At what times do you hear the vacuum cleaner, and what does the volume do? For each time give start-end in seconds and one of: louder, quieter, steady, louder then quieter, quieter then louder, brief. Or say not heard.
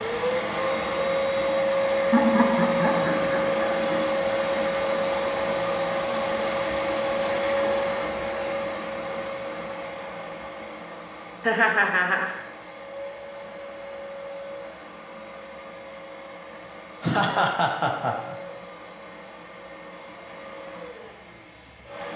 0.0-22.1 quieter.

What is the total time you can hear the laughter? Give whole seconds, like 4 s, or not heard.
4 s.